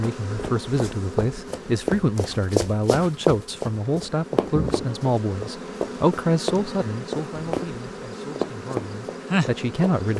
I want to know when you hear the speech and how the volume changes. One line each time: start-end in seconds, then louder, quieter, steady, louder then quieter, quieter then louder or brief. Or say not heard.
0.0-10.1 quieter.